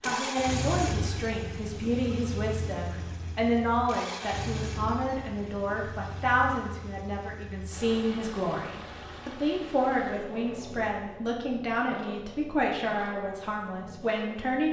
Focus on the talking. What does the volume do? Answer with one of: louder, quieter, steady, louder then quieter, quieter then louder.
steady.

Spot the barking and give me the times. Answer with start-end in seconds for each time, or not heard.
not heard.